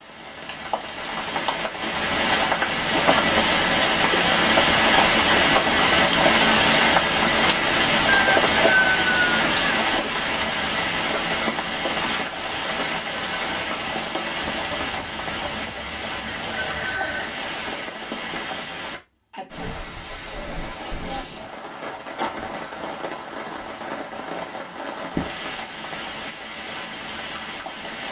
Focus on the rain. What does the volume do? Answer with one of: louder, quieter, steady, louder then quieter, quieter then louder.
quieter.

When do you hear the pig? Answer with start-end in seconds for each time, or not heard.
not heard.